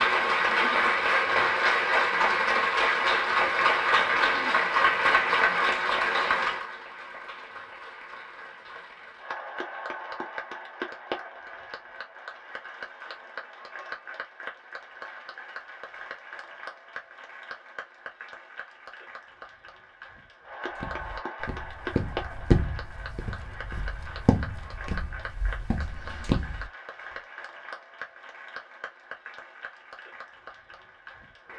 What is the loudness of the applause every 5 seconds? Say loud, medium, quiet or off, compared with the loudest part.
loud, medium, quiet, quiet, quiet, quiet, quiet.